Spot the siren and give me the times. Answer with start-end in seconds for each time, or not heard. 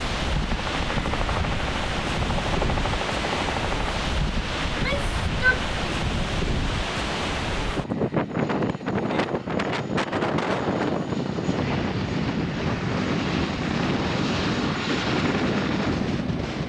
not heard.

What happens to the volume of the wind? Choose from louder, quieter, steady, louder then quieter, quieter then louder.
steady.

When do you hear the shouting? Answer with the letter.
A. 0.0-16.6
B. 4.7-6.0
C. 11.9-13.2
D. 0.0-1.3
B.